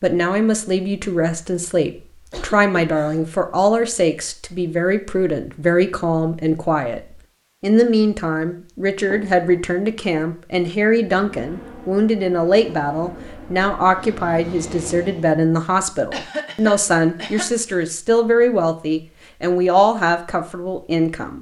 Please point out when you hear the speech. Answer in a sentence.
The speech can be heard from 0.0 to 7.0 s and from 7.6 to 21.3 s.